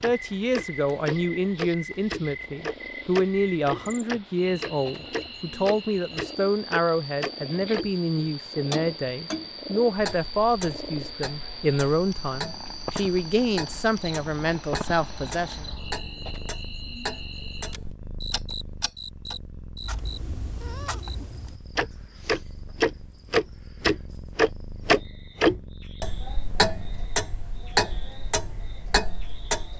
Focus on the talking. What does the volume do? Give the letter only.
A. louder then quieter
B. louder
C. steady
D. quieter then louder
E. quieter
C.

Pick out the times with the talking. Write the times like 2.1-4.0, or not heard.
0.0-15.7.